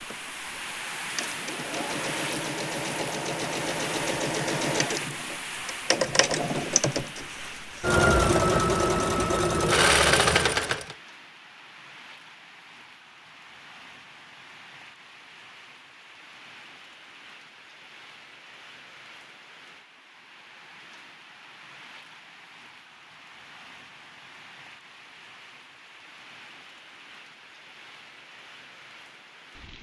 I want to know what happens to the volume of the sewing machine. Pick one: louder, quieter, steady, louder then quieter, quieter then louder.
louder.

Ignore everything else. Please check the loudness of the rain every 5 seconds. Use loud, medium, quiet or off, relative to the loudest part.
loud, loud, quiet, quiet, quiet, quiet.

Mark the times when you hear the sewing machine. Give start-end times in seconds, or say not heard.
0.0-10.9.